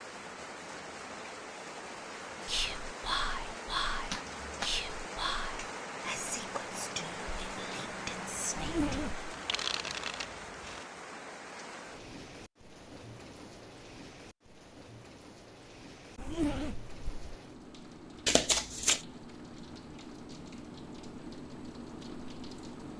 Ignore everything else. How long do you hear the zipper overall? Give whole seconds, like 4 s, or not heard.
2 s.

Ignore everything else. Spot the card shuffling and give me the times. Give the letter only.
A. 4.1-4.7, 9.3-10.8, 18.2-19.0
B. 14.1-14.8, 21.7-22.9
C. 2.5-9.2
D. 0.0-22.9
A.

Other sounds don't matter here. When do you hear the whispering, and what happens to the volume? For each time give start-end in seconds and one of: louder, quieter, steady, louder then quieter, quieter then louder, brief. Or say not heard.
2.5-9.2 quieter.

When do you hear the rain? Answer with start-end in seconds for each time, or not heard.
0.0-22.9.